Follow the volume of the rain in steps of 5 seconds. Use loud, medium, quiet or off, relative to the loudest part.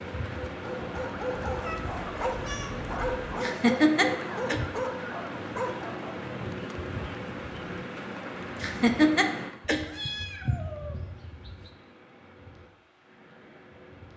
loud, loud, quiet.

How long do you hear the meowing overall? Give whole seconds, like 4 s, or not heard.
4 s.